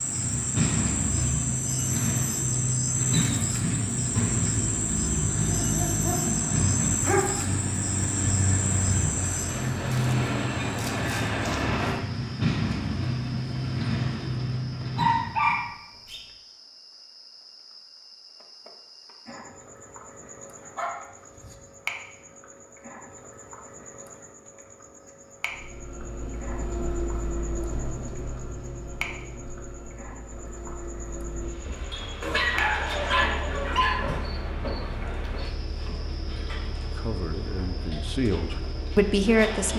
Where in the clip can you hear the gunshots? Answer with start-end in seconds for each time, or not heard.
not heard.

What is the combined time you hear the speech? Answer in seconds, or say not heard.
3 s.